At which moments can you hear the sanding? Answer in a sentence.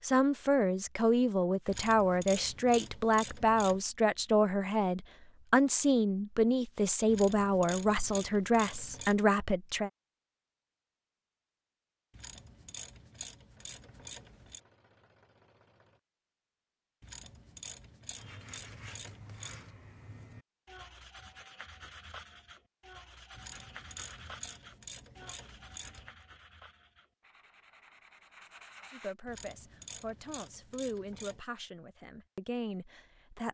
You can hear the sanding from 18.1 to 29.1 s.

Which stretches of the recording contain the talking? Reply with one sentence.
The talking can be heard from 0.0 to 9.9 s and from 28.9 to 33.4 s.